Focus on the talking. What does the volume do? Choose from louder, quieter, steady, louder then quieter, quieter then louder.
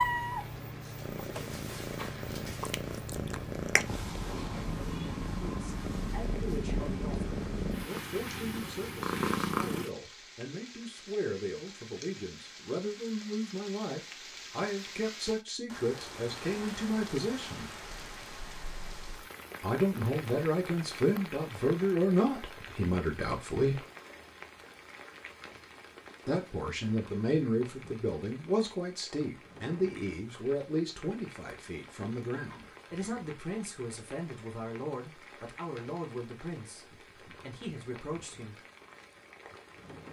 louder then quieter.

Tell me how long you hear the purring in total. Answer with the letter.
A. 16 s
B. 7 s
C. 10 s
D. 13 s
C.